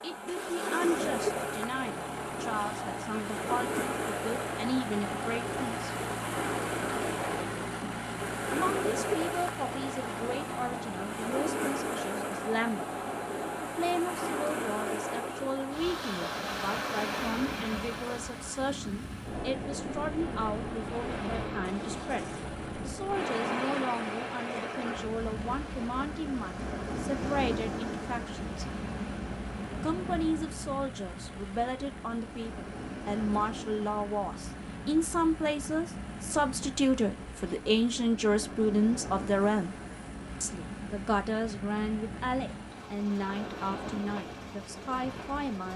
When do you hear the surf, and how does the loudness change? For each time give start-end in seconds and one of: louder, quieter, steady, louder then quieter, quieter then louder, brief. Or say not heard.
0.0-45.7 quieter.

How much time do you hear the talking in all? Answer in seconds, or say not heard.
41 s.